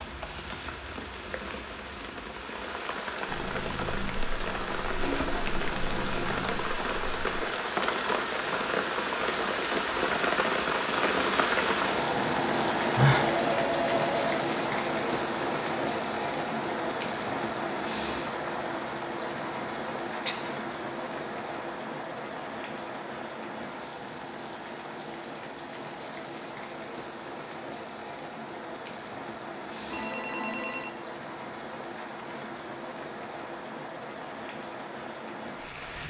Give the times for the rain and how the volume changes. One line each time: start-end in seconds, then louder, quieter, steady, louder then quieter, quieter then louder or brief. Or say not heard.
0.0-36.0 louder then quieter.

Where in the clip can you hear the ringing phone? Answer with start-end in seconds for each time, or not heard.
13.2-14.4, 29.9-30.9.